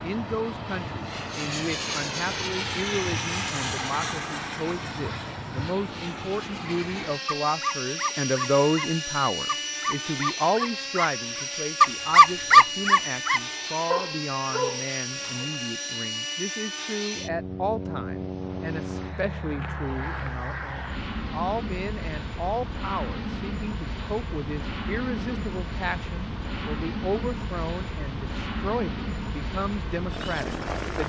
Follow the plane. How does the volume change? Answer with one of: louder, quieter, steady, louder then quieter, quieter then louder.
steady.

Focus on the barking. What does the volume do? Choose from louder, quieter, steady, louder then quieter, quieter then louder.
louder then quieter.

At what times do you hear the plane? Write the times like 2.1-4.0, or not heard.
0.0-31.0.